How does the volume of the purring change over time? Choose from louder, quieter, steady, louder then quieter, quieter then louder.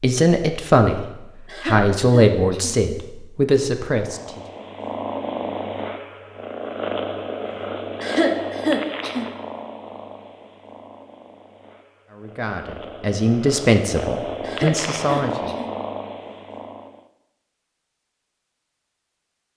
quieter then louder.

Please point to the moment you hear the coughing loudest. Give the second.
8 s.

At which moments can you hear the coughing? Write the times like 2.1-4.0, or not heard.
1.4-2.8, 8.0-9.3, 14.4-15.7.